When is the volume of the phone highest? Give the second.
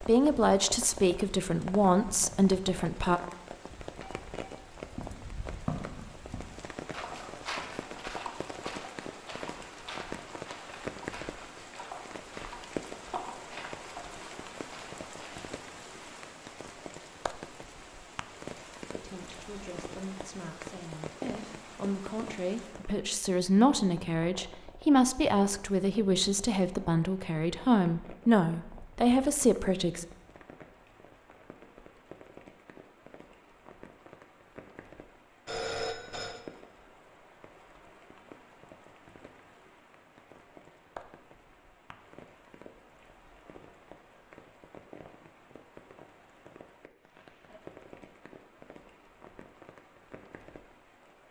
36 s.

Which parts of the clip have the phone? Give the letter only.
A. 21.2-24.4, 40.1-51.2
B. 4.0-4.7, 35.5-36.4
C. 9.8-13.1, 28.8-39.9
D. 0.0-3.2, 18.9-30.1
B.